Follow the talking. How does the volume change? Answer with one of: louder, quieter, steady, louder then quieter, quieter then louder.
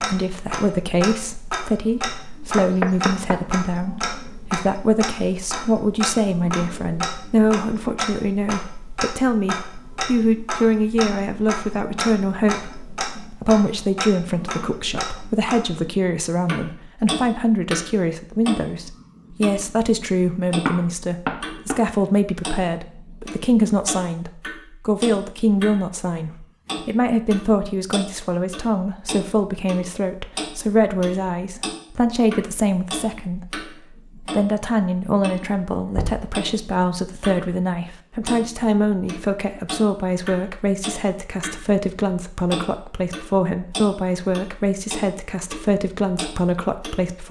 steady.